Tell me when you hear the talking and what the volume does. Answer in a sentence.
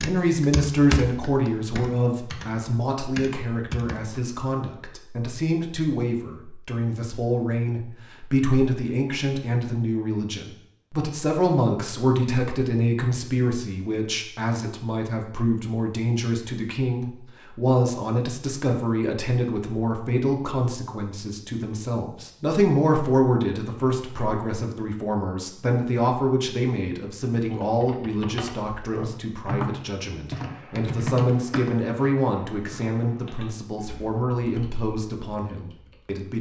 The talking can be heard from 0.0 to 36.3 s, at a steady volume.